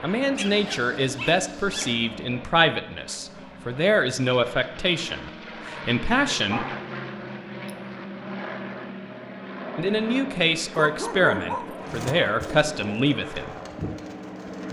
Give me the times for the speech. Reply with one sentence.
You can hear the speech from 0.0 to 6.7 s and from 9.8 to 13.6 s.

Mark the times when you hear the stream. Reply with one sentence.
You can't hear the stream here.